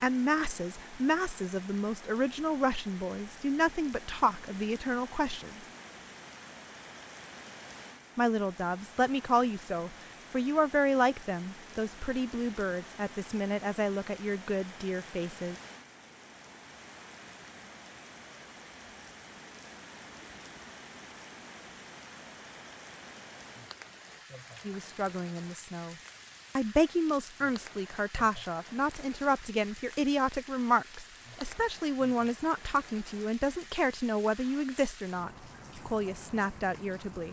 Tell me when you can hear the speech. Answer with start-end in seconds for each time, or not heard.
0.0-5.6, 8.2-15.6, 24.6-25.9, 26.6-37.2.